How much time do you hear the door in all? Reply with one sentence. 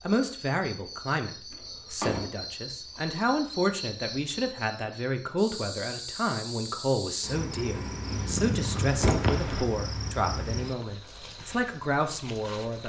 You can hear the door for 2 seconds altogether.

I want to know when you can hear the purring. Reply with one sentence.
You can hear the purring from 8.1 to 9.7 s.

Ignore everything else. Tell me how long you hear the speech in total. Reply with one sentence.
The speech can be heard for 13 seconds in total.